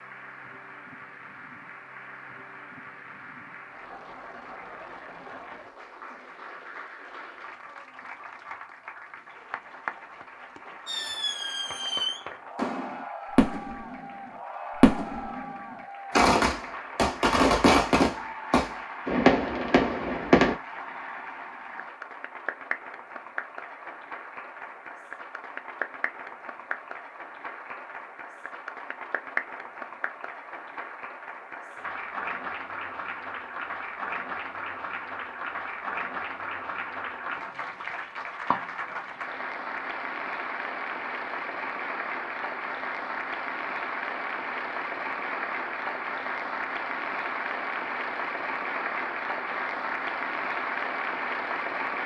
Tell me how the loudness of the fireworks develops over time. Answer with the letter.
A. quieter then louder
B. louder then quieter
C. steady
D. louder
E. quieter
D.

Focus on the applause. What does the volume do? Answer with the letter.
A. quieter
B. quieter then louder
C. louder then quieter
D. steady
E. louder
E.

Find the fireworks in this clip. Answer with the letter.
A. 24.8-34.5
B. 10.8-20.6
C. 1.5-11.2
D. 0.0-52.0
B.